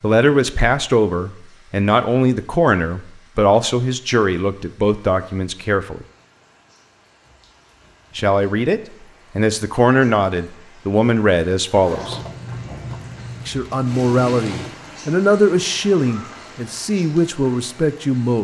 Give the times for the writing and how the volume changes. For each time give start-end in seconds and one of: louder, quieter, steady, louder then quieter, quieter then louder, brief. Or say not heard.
not heard.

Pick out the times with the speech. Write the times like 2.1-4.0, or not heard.
0.0-6.0, 8.2-12.2, 13.4-18.3.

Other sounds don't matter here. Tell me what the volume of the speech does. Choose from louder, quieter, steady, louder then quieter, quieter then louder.
steady.